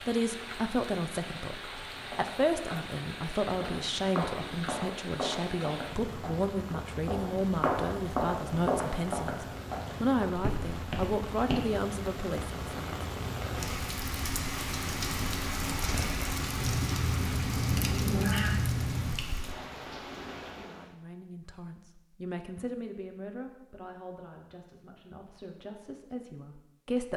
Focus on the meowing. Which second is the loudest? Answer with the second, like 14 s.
18 s.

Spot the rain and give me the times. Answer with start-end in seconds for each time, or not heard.
0.0-20.9.